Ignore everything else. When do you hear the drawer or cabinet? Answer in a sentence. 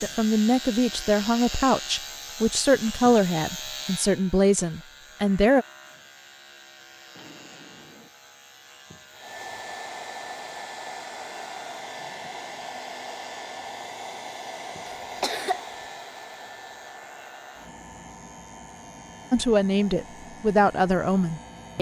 You can hear the drawer or cabinet from 7.2 to 8.1 s.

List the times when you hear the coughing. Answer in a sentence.
The coughing can be heard from 14.8 to 15.6 s.